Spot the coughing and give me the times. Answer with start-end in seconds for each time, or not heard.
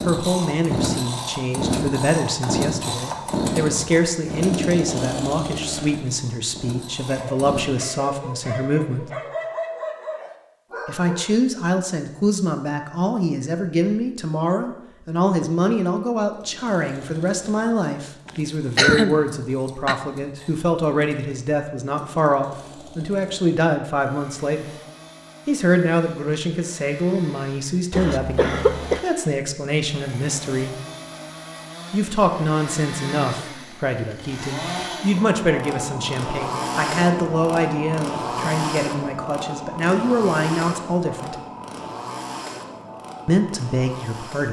18.2-19.9, 27.9-29.0.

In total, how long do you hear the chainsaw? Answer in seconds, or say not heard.
36 s.